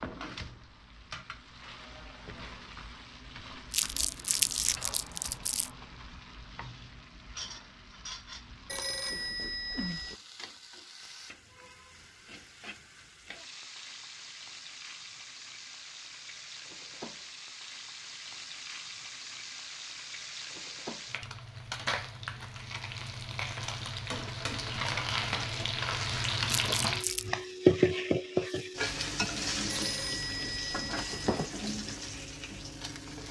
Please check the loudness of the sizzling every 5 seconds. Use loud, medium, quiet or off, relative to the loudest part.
quiet, quiet, quiet, quiet, medium, loud, medium.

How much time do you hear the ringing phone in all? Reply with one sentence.
The ringing phone can be heard for 3 seconds in total.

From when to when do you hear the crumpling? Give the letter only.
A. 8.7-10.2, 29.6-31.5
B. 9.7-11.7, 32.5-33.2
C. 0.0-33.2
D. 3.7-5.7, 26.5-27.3
D.